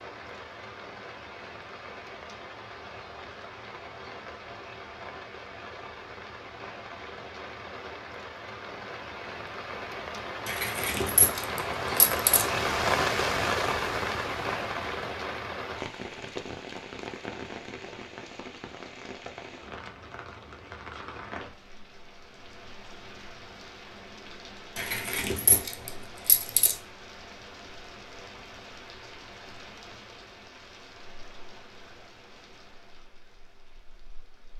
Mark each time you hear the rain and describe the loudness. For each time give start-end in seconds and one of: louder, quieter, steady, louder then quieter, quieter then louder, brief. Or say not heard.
0.0-34.5 louder then quieter.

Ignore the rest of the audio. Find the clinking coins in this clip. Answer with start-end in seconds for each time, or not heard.
10.4-12.4, 24.8-26.8.